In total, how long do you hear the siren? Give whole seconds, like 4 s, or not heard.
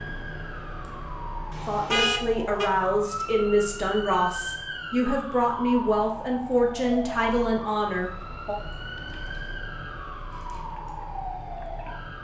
12 s.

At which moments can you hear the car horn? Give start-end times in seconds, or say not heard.
1.5-2.7.